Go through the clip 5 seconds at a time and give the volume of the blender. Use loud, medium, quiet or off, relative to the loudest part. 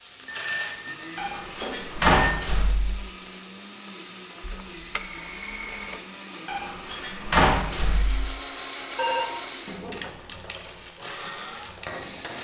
medium, loud, loud.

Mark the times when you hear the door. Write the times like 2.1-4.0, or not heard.
1.1-3.0, 6.5-8.2.